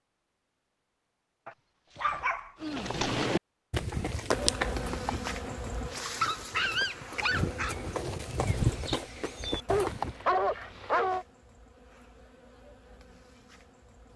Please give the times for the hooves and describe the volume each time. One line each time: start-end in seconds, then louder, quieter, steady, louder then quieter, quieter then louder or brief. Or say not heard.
2.6-10.2 quieter then louder.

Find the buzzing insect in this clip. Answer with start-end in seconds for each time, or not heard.
4.3-14.1.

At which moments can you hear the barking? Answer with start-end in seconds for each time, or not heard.
1.4-2.9, 6.0-7.8, 9.7-11.2.